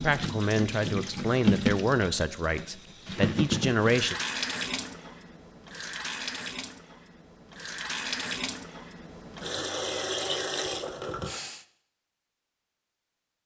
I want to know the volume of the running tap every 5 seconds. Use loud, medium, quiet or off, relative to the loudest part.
loud, medium, loud.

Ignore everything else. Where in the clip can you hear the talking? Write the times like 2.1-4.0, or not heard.
0.0-4.2.